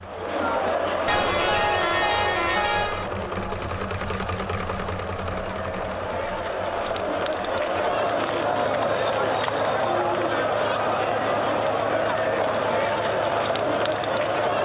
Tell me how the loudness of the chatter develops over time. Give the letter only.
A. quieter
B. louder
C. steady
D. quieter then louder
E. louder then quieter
D.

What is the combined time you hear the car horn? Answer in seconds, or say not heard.
2 s.